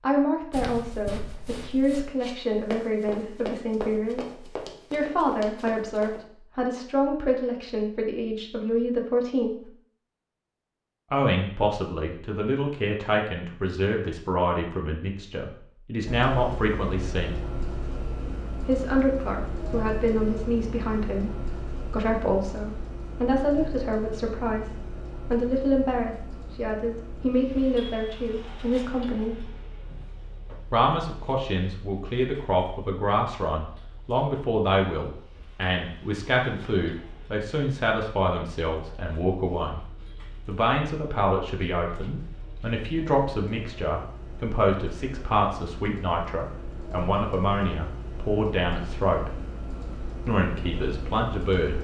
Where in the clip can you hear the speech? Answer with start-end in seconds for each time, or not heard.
0.0-9.7, 11.1-17.4, 18.6-29.4, 30.7-39.9, 40.5-49.3, 50.2-51.7.